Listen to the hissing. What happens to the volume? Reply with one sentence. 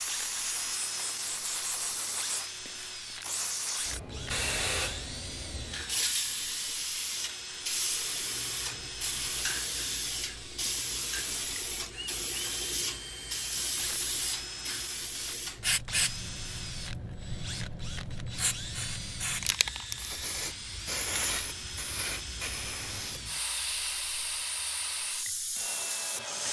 The volume of the hissing stays about the same.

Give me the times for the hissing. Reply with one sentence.
The hissing can be heard from 0.0 to 26.4 s.